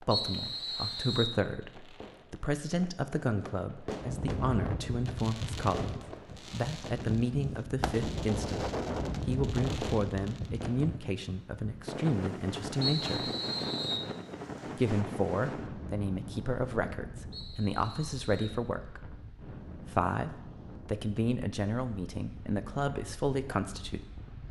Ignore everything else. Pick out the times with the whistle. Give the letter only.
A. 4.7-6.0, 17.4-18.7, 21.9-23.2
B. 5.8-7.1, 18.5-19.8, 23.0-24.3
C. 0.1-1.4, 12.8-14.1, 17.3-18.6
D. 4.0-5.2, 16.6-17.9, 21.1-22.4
C.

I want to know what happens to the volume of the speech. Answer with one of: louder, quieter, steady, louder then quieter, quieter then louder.
steady.